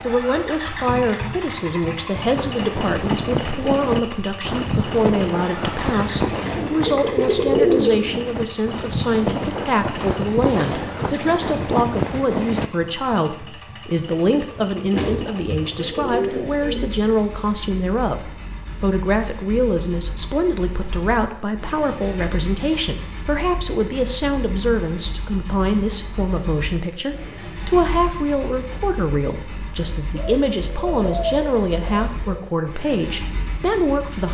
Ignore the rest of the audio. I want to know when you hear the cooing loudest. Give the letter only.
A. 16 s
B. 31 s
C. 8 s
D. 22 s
C.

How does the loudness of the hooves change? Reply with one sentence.
The volume of the hooves goes down, then up.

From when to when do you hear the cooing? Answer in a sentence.
You can hear the cooing from 6.5 to 8.2 s, from 14.9 to 16.9 s and from 30.1 to 32.3 s.